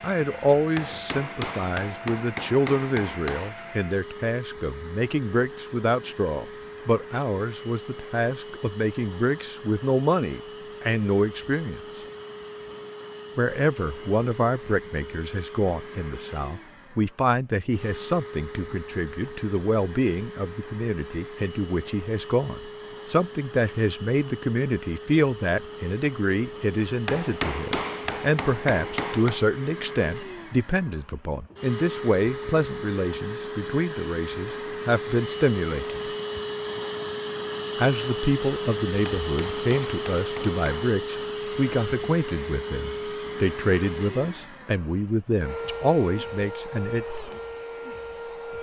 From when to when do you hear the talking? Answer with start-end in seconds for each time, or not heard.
0.0-11.8, 13.3-36.1, 37.8-47.0.